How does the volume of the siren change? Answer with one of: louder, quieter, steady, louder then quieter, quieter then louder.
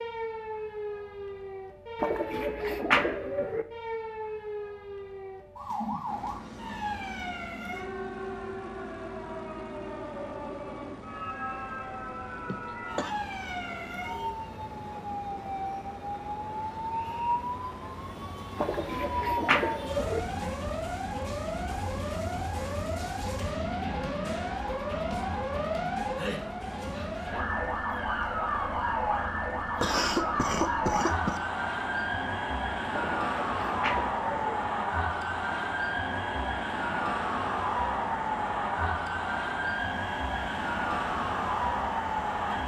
louder.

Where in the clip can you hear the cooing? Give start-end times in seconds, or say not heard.
2.0-3.6, 18.6-20.2, 32.9-34.5.